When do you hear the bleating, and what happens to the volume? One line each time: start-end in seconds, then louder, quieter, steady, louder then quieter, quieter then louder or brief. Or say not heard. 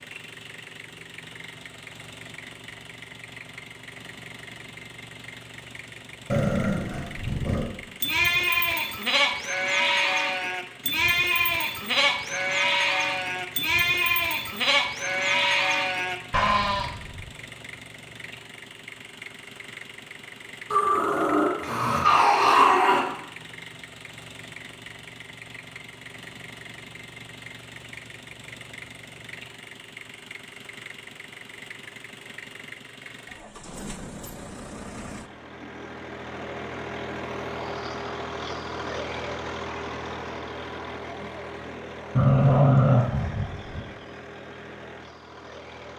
8.0-17.3 steady.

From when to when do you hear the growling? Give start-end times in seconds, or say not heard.
6.3-7.7, 20.7-23.1, 42.1-43.9.